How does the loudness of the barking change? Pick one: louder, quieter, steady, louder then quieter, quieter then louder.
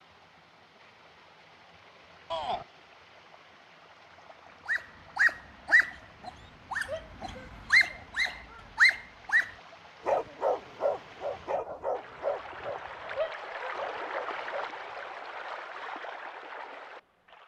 quieter.